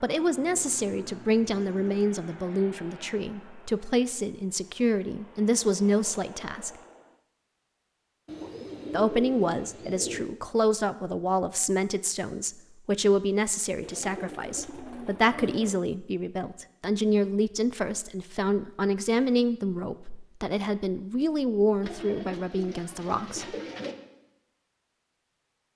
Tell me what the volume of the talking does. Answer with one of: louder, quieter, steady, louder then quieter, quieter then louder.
steady.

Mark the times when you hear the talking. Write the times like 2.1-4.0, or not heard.
0.0-6.7, 8.9-23.6.